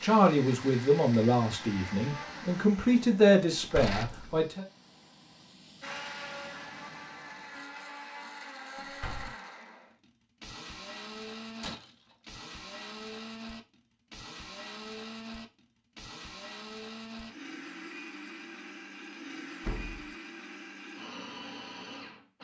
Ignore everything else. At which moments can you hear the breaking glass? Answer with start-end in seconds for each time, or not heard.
11.6-12.4.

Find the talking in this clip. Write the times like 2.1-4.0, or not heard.
0.0-4.7.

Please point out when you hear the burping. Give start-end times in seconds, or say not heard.
not heard.